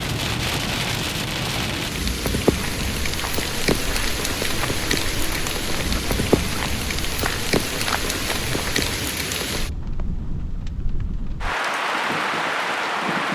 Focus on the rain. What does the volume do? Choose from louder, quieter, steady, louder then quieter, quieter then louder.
steady.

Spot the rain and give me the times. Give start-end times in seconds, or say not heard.
0.0-13.2.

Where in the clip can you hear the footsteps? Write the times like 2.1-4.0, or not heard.
2.5-8.9.